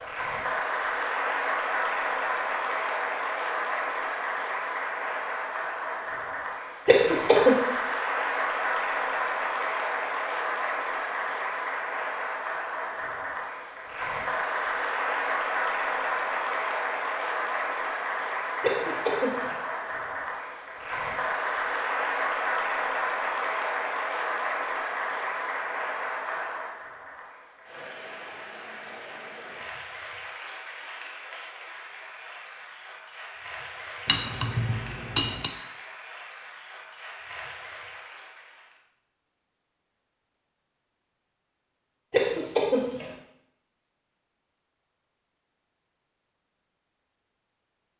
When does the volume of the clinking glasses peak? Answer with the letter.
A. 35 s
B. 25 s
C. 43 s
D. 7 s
A.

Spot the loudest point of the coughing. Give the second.
7 s.